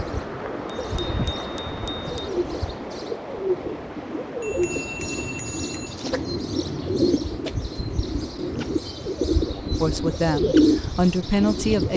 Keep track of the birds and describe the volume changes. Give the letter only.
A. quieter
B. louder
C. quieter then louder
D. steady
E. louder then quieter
B.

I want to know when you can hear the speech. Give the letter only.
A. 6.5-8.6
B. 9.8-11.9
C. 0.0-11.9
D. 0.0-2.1
B.